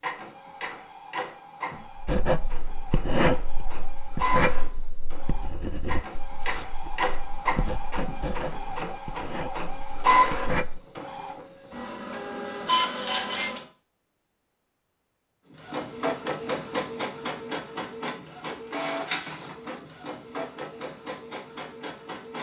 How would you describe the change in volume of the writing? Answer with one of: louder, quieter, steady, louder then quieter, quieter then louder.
quieter.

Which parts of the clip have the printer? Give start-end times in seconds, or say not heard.
0.0-13.7, 15.6-22.3.